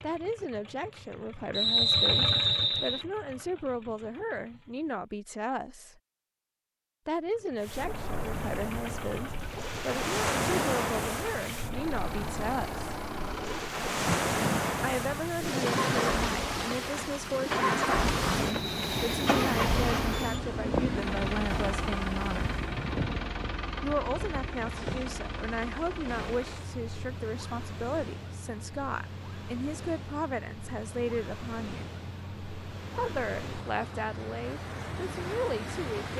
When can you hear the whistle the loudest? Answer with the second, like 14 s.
2 s.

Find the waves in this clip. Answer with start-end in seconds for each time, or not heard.
7.6-36.1.